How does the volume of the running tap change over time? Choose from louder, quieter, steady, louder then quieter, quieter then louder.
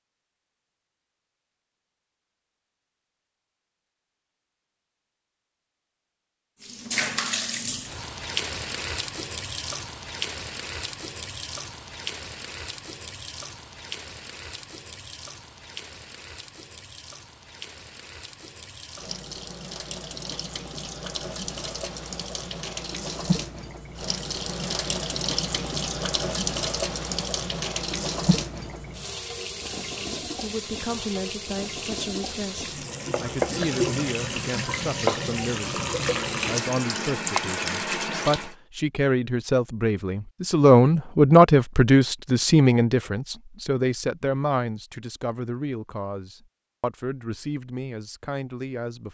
quieter then louder.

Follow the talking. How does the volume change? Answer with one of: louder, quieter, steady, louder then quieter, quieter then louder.
louder then quieter.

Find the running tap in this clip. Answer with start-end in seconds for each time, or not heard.
6.6-38.5.